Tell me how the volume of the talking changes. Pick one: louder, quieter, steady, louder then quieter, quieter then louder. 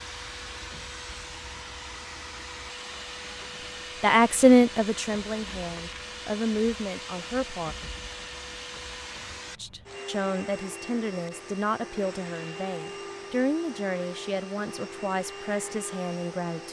quieter.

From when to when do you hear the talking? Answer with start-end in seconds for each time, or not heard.
4.0-7.8, 9.6-16.6.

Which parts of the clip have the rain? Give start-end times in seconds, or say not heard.
not heard.